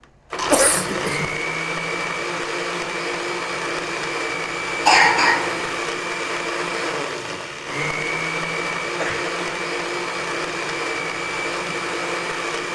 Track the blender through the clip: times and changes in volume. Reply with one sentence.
The blender can be heard from 0.0 to 12.7 s, at a steady volume.